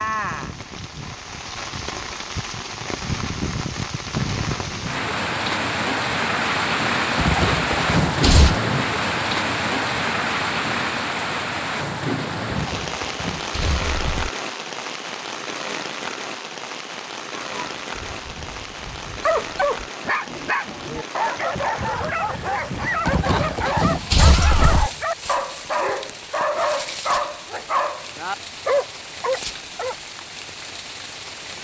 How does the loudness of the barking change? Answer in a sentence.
The loudness of the barking stays about the same.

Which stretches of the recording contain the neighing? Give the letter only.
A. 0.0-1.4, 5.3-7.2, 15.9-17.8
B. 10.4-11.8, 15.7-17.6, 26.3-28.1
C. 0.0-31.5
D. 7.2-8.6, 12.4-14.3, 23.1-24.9
D.